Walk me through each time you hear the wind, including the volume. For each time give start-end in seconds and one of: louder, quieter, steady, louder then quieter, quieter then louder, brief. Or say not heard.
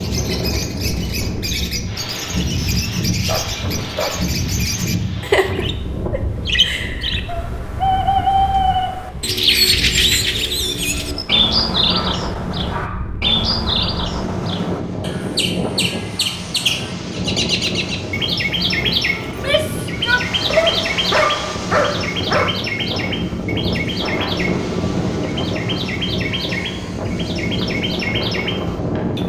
0.0-29.2 quieter then louder.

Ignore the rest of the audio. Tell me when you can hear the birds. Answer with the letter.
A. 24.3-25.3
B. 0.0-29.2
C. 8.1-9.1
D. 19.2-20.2
B.